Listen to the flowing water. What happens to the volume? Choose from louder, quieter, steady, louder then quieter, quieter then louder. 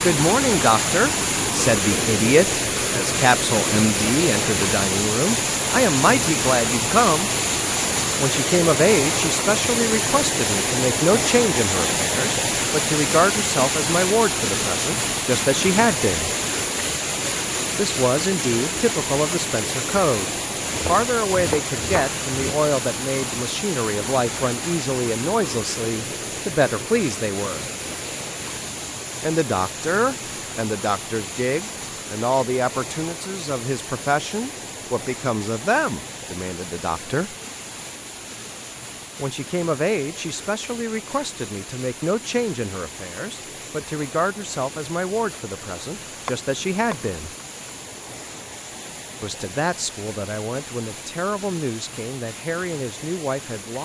quieter.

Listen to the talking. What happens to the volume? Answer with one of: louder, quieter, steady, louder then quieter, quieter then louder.
quieter.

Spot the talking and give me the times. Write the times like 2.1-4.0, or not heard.
0.0-7.3, 8.2-16.3, 17.8-27.6, 29.2-37.4, 39.2-47.3, 49.2-53.7.